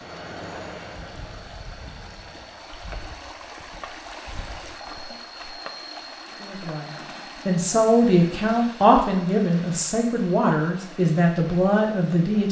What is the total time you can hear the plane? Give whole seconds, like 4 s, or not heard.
3 s.